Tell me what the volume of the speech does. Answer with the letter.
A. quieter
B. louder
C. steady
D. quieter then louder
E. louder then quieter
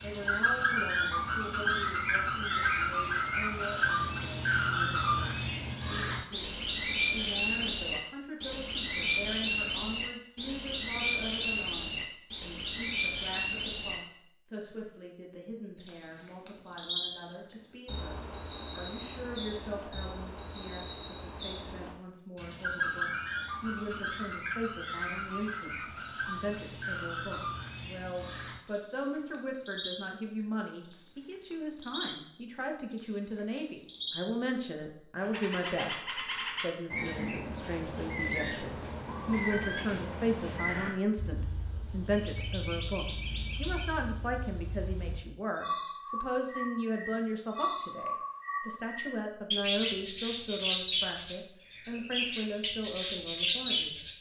B.